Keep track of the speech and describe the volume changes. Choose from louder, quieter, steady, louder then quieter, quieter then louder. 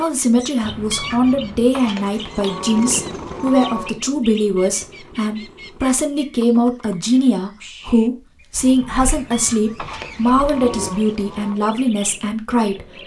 steady.